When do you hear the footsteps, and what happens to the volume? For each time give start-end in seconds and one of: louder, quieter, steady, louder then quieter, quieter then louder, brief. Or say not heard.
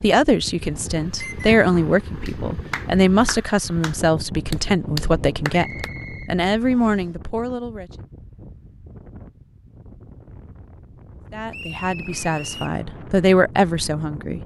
not heard.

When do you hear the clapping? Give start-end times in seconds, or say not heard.
2.2-5.9.